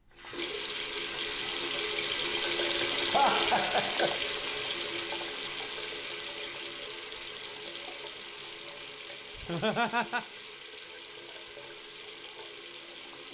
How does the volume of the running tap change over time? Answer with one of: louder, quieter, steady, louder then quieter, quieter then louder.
quieter.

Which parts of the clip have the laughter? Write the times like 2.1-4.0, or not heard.
3.1-4.2, 9.3-10.2.